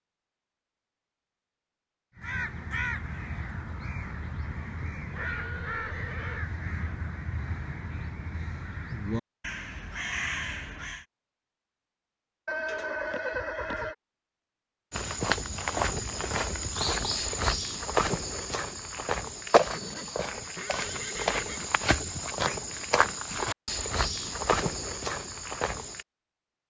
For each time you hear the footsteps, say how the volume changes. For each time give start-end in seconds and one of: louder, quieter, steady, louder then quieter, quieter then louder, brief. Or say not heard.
14.9-26.1 steady.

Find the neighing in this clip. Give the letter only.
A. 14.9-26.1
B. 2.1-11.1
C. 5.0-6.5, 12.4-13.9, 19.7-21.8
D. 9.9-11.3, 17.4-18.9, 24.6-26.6
C.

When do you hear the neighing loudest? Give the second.
13 s.